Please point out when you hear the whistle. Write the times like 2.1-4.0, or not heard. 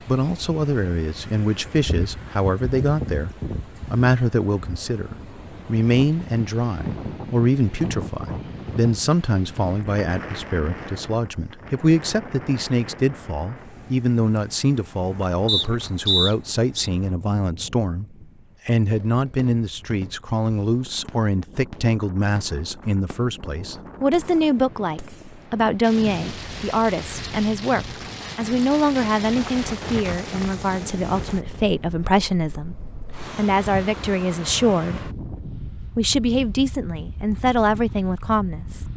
15.4-16.9.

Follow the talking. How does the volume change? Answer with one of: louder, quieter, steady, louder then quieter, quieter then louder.
steady.